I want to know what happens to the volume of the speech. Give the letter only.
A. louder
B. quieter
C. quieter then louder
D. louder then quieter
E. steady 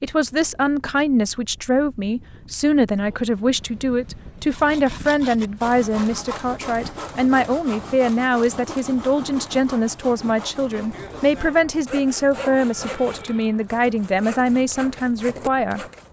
E.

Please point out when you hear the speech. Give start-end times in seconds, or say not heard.
0.0-15.8.